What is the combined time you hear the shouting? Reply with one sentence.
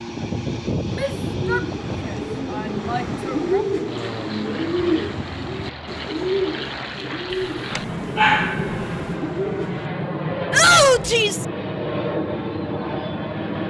You can hear the shouting for 4 seconds altogether.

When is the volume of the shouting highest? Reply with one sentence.
The volume of the shouting peaks at 11 seconds.